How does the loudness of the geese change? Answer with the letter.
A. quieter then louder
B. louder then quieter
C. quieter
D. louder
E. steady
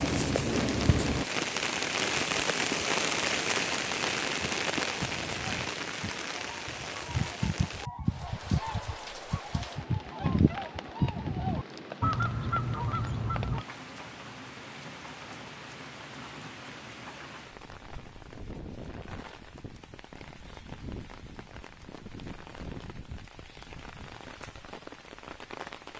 D.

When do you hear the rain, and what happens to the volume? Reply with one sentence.
The rain can be heard from 0.0 to 25.9 s, getting quieter.